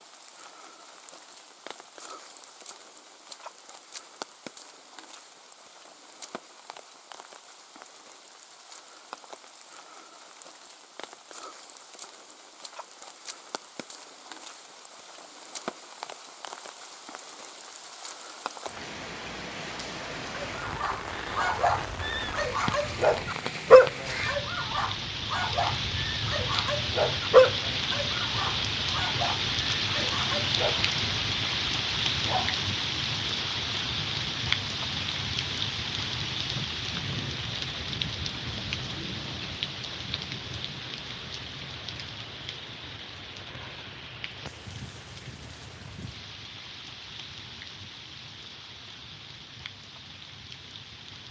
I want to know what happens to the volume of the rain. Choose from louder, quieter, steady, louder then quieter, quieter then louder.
louder then quieter.